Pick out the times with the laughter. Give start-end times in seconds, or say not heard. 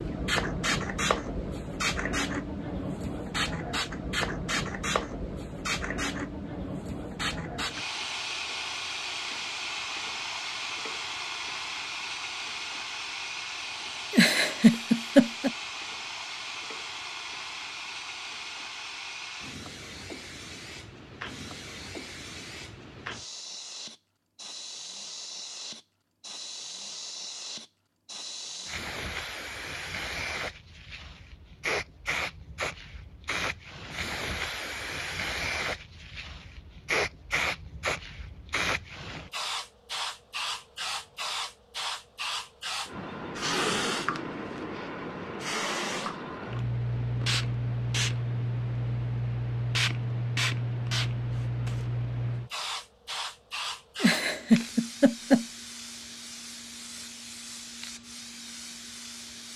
14.1-15.5, 54.0-55.5.